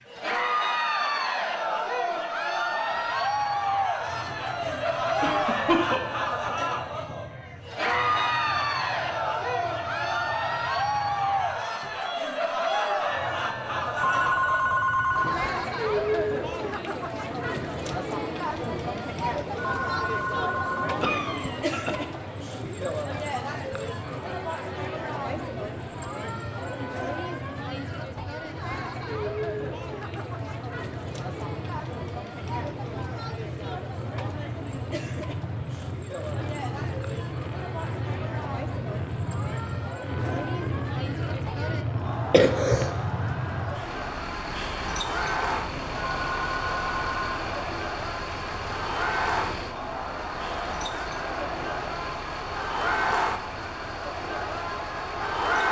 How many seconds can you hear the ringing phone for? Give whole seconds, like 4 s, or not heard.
4 s.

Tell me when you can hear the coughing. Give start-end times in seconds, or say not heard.
5.2-6.0, 21.0-22.1, 42.3-42.9.